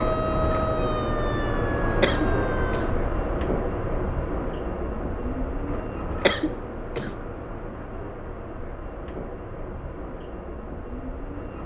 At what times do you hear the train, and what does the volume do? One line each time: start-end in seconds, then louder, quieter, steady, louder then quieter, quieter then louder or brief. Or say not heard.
0.0-11.6 quieter.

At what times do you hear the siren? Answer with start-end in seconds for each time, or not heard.
0.0-2.9.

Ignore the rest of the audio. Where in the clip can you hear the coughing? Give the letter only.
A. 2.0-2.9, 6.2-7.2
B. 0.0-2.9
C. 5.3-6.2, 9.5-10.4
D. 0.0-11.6
A.